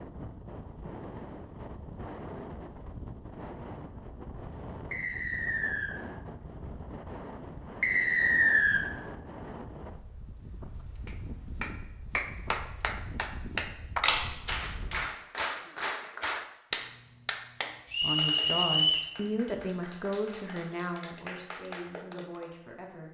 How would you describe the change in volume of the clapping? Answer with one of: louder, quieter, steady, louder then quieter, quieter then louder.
quieter.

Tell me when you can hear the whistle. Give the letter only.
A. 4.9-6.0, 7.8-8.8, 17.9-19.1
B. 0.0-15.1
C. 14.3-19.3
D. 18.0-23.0
A.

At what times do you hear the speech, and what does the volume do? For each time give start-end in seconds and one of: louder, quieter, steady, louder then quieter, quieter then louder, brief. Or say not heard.
18.0-23.0 quieter.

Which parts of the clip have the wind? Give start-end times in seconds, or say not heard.
0.0-15.1.